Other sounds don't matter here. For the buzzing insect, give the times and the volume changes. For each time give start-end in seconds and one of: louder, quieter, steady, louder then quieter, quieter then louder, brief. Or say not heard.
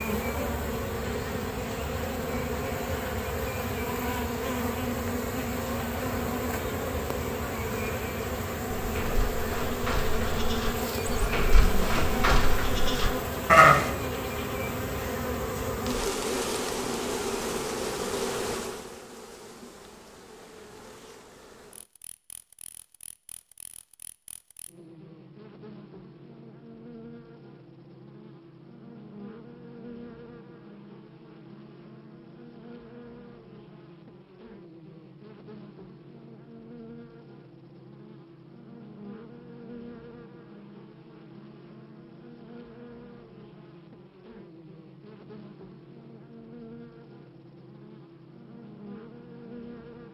0.0-50.1 quieter.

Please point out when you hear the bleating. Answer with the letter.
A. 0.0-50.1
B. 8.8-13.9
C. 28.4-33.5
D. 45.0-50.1
B.